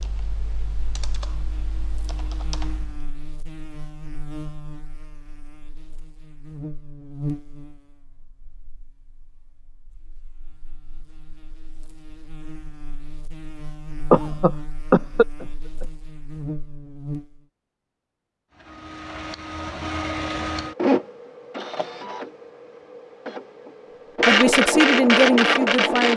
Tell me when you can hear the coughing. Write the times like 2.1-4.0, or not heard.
14.1-15.8.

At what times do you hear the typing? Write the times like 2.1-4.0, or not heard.
0.0-3.0.